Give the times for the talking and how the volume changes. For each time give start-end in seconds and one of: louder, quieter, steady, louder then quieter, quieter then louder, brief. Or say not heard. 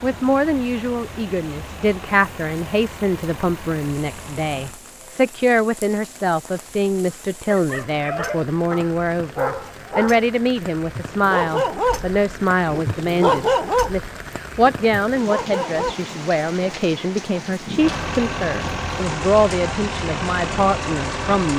0.0-21.5 steady.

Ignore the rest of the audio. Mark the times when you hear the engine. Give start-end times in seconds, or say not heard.
0.0-4.8, 17.8-21.5.